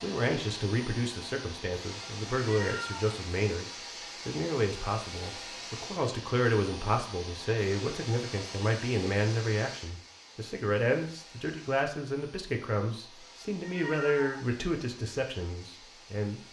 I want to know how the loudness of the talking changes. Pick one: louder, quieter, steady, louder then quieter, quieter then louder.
steady.